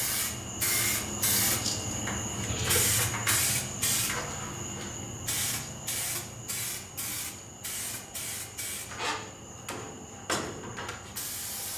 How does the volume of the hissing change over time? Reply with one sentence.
The loudness of the hissing goes down.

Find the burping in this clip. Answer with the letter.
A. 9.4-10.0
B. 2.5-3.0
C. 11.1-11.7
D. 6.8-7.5
B.